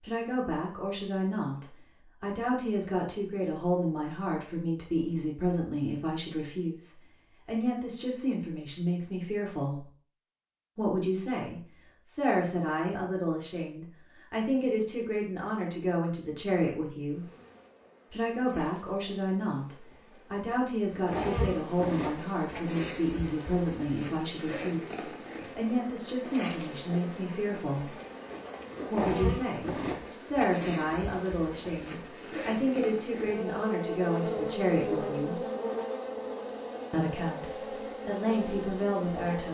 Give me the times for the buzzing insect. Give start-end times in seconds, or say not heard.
17.1-39.5.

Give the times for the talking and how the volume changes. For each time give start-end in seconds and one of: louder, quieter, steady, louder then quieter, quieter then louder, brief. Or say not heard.
0.0-9.9 steady
10.8-17.3 steady
18.1-28.0 steady
28.9-35.4 steady
36.9-39.5 brief.